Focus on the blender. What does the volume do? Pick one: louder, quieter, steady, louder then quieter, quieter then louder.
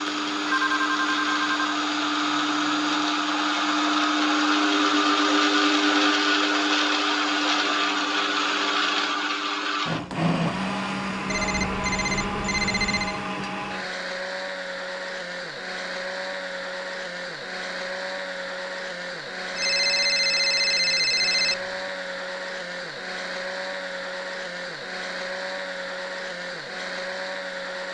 quieter.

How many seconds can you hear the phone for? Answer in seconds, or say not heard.
6 s.